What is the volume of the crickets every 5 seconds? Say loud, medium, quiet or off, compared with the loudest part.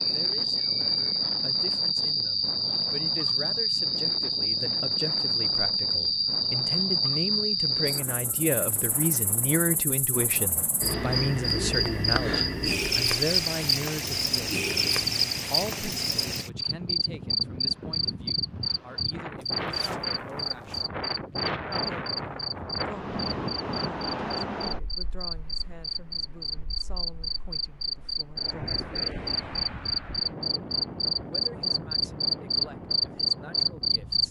loud, loud, loud, loud, medium, medium, loud.